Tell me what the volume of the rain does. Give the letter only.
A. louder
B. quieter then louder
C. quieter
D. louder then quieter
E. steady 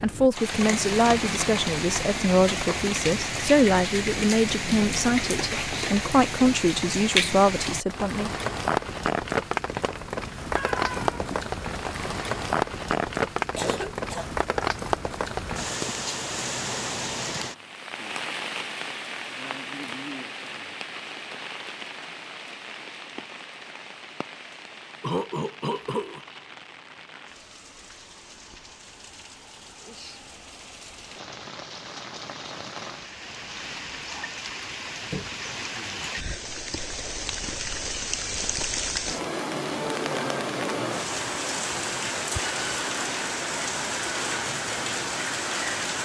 B.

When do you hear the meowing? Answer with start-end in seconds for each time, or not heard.
10.6-11.7.